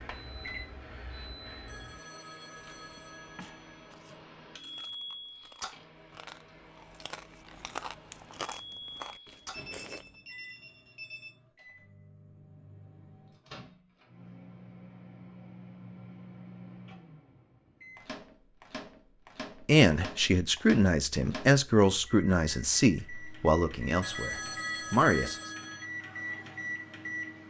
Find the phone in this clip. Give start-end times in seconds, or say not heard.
1.6-4.0, 9.5-11.3, 24.0-25.9.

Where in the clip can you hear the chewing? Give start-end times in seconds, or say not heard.
2.5-10.2.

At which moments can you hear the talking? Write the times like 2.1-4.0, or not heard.
19.6-25.5.